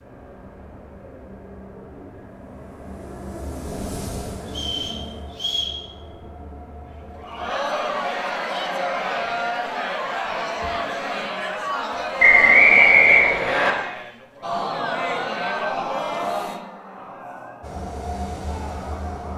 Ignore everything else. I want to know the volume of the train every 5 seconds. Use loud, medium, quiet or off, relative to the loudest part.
loud, medium, off, loud.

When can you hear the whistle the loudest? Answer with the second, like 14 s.
13 s.